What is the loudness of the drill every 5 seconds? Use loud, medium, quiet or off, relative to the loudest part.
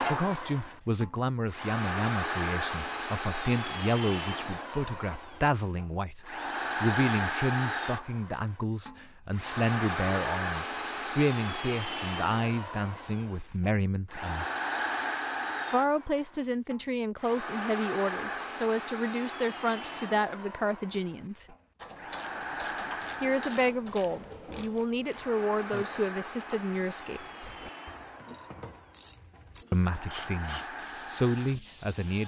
loud, loud, loud, loud, medium, medium, medium.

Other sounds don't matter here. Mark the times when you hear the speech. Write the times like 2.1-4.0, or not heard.
0.0-14.4, 15.7-21.6, 23.2-27.2, 29.7-32.2.